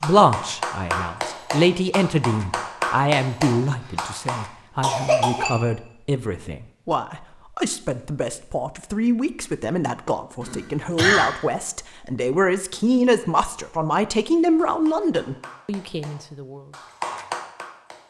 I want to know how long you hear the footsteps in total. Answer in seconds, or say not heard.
not heard.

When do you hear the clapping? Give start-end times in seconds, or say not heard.
0.0-4.5, 14.7-18.0.